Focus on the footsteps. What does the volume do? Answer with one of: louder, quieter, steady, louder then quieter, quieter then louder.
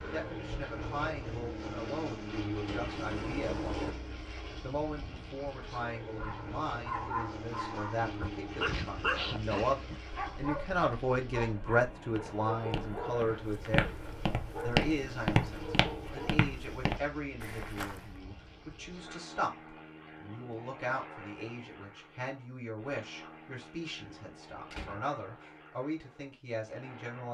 louder then quieter.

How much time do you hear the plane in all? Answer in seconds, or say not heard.
27 s.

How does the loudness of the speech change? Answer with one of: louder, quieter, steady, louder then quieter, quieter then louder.
louder then quieter.